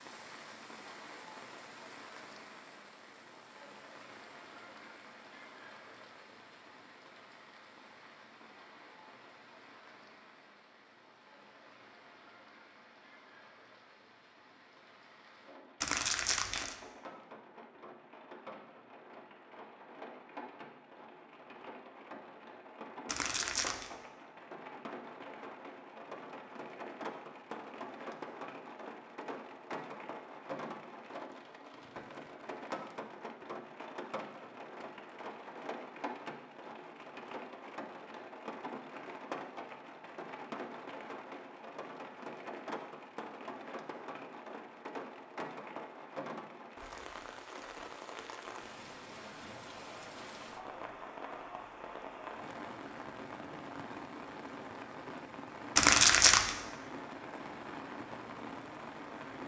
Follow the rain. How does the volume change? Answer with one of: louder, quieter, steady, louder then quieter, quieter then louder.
louder.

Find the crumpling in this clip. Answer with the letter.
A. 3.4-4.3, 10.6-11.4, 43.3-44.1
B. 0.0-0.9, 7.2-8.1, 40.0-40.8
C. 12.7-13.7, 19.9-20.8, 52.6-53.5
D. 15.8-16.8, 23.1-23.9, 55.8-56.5
D.